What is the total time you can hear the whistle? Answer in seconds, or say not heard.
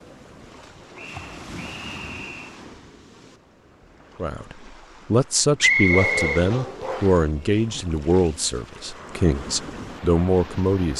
3 s.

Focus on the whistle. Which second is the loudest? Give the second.
6 s.